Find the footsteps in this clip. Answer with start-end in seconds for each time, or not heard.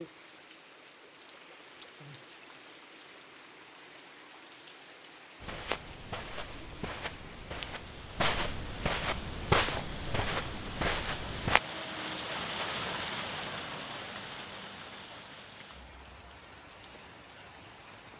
5.4-11.6.